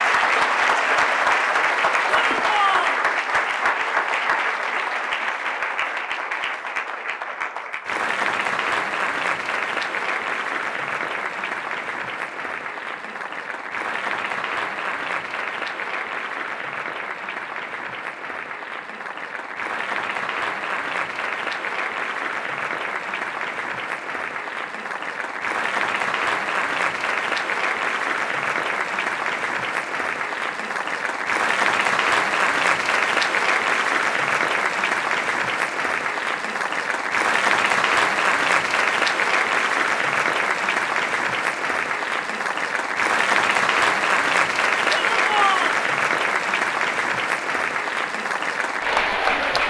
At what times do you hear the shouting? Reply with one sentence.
You can hear the shouting from 2.0 to 3.0 s and from 44.9 to 45.8 s.